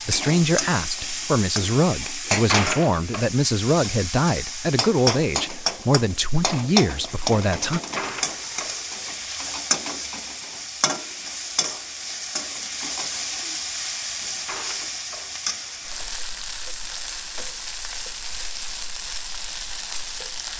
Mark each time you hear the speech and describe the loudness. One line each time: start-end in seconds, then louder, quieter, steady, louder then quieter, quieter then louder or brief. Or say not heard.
0.1-7.8 steady.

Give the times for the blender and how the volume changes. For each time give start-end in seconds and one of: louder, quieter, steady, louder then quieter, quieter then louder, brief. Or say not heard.
not heard.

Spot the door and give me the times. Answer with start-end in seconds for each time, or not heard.
2.2-3.2, 7.8-9.6, 14.2-16.1.